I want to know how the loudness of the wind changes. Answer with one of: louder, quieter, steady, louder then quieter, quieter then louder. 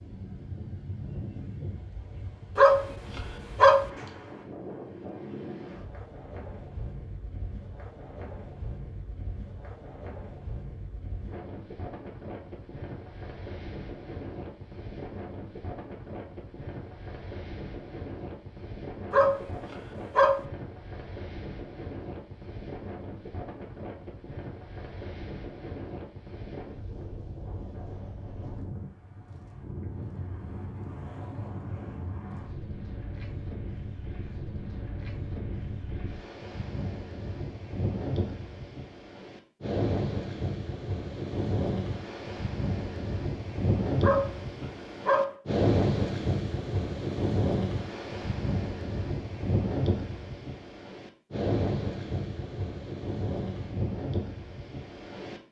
louder.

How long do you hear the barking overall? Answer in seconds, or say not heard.
4 s.